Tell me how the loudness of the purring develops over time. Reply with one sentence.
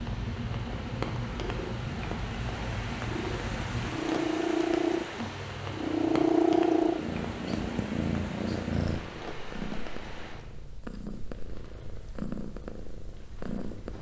The loudness of the purring goes up, then down.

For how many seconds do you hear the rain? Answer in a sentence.
You can hear the rain for 14 seconds altogether.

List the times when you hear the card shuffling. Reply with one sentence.
You can't hear the card shuffling here.